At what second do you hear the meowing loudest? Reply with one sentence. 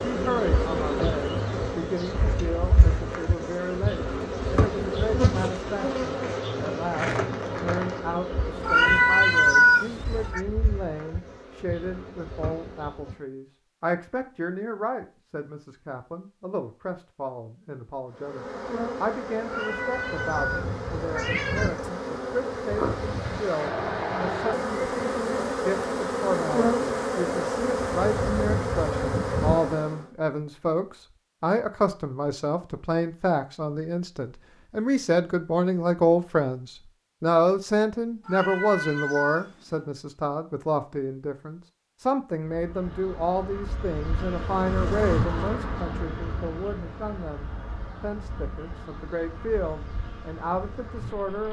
The loudest moment of the meowing is at 10 seconds.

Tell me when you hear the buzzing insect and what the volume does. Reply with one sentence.
You can hear the buzzing insect from 0.0 to 13.2 s, getting quieter; from 18.1 to 30.1 s, getting louder; and from 42.4 to 51.4 s, getting louder then quieter.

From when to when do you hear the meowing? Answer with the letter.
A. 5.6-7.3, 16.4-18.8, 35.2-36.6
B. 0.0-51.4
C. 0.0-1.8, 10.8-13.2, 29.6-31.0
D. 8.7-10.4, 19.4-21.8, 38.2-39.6
D.